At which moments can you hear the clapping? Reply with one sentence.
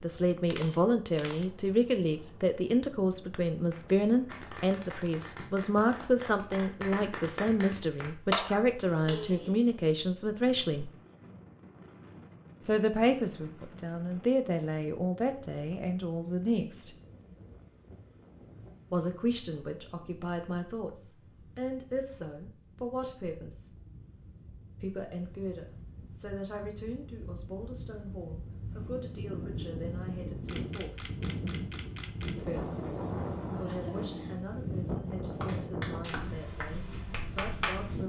The clapping can be heard from 3.7 to 9.8 s and from 35.3 to 38.0 s.